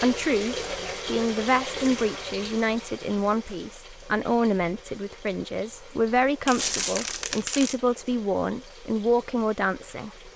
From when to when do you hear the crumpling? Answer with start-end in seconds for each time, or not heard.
6.5-7.8.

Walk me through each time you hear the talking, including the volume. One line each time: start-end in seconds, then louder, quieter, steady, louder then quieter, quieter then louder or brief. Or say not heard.
0.0-10.3 steady.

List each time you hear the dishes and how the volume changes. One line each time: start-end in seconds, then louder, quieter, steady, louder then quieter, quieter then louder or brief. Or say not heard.
not heard.